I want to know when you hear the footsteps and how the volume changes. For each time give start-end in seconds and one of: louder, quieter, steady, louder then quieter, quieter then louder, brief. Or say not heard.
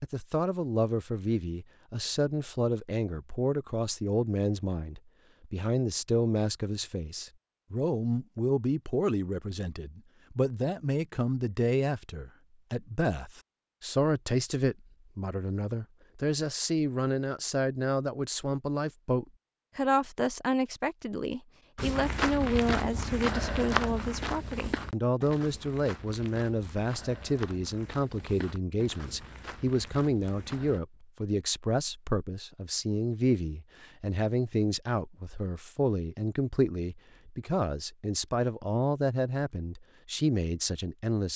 21.8-30.8 quieter.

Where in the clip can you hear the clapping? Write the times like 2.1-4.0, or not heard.
not heard.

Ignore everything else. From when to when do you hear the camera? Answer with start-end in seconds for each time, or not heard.
not heard.